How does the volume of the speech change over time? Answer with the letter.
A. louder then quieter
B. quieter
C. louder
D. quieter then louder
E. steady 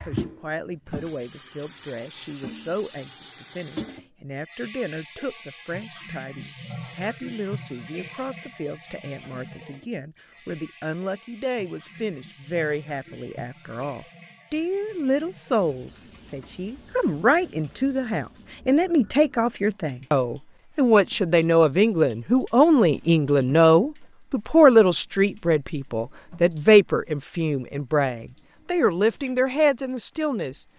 C.